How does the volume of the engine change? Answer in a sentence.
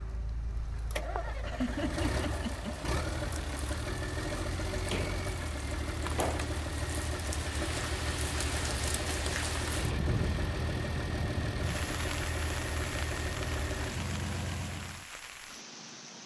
The loudness of the engine stays about the same.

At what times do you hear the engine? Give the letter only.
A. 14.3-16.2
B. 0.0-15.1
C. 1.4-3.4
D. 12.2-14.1
B.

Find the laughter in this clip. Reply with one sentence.
You can hear the laughter from 1.4 to 3.4 s.